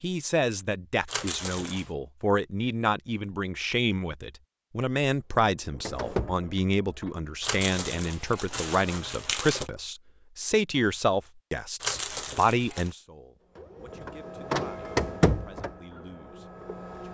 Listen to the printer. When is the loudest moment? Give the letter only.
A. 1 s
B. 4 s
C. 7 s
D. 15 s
D.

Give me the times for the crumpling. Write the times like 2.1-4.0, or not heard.
1.1-1.9, 7.4-9.7, 11.8-12.9.